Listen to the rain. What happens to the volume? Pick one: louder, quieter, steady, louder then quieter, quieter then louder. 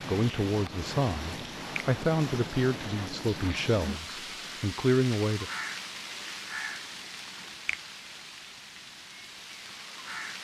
quieter.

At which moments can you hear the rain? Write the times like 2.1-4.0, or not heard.
0.0-10.3.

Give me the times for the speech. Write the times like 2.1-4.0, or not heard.
0.1-5.5.